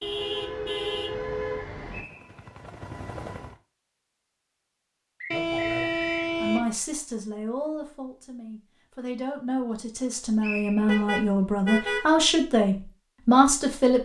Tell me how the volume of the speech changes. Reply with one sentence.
The volume of the speech goes up.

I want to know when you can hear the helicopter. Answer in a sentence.
You can hear the helicopter from 1.9 to 3.6 s.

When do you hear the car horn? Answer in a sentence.
You can hear the car horn from 0.0 to 2.0 s, from 5.3 to 6.7 s and from 10.8 to 12.1 s.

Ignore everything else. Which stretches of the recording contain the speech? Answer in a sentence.
The speech can be heard from 6.4 to 14.0 s.